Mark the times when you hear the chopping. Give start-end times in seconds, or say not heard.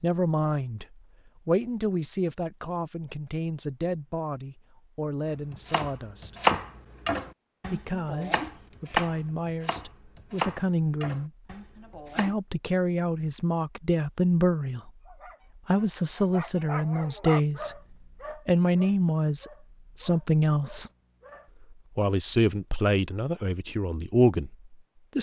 5.5-12.3.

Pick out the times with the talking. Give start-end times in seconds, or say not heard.
0.0-6.4, 7.7-11.3, 12.2-14.9, 15.7-20.9, 21.6-25.1.